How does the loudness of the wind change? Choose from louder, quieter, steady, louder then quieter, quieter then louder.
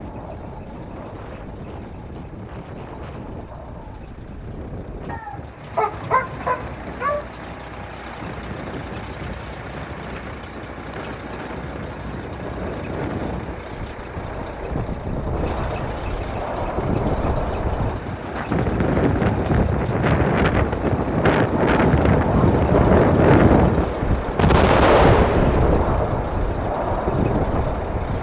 louder.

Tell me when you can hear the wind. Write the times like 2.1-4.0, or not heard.
0.0-28.1.